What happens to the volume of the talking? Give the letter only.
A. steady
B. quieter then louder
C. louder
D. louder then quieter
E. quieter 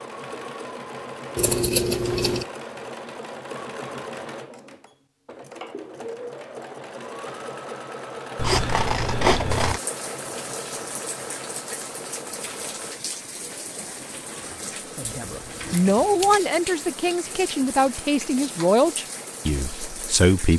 E.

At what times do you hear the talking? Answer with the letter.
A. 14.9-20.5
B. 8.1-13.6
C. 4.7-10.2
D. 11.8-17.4
A.